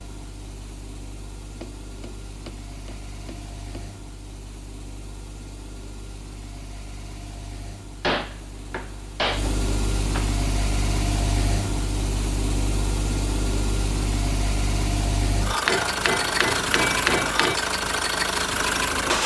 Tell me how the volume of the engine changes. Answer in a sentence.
The loudness of the engine goes up.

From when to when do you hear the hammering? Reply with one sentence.
The hammering can be heard from 1.6 to 3.9 s, from 8.0 to 10.3 s and from 15.7 to 17.6 s.